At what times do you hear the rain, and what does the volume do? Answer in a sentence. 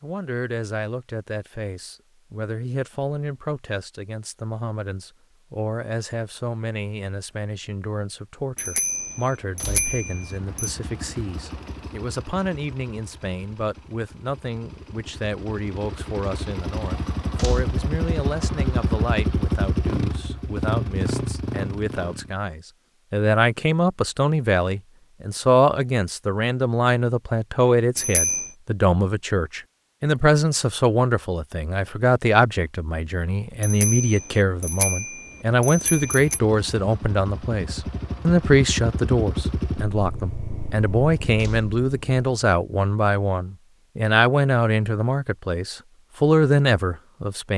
The rain can't be heard in this clip.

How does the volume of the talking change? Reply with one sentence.
The loudness of the talking goes up.